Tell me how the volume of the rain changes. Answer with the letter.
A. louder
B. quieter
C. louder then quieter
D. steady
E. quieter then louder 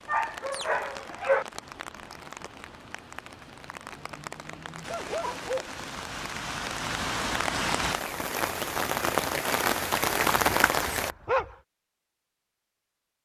A.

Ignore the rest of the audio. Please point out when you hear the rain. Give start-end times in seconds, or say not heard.
0.0-11.2.